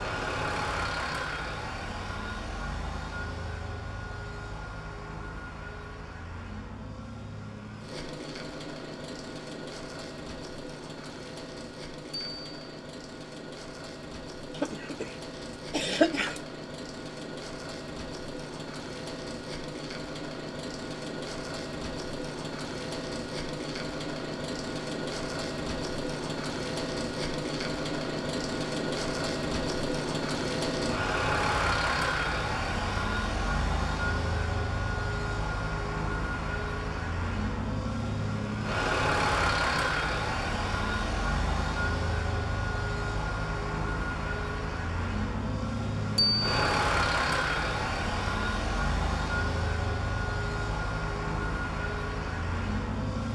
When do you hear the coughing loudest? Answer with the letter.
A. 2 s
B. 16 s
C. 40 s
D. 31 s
B.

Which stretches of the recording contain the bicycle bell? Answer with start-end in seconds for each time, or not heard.
12.1-12.8, 46.1-46.7.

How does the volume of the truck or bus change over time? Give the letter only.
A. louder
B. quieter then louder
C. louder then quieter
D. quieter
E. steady
A.